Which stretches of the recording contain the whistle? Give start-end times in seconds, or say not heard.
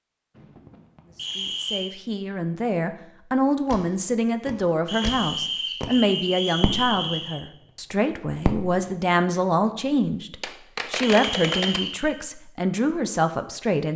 1.1-1.9, 4.8-7.4, 11.0-12.2.